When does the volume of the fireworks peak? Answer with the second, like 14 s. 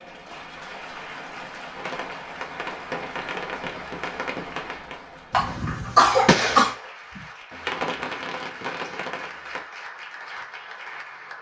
6 s.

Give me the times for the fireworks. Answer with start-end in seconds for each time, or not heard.
1.7-9.7.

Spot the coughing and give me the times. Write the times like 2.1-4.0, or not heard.
5.3-6.8.